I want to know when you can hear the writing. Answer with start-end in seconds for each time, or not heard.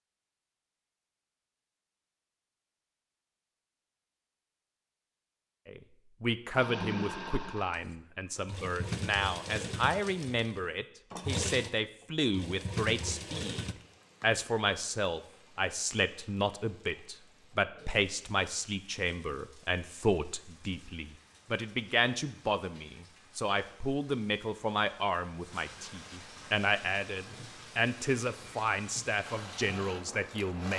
not heard.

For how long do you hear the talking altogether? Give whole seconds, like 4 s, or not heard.
25 s.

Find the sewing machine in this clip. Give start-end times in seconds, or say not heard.
6.5-13.8, 29.2-30.7.